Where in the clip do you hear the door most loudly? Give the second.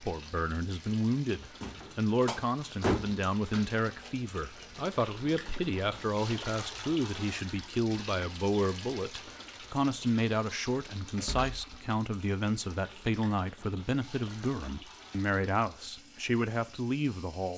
3 s.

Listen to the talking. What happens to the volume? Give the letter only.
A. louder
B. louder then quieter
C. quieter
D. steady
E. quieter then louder
D.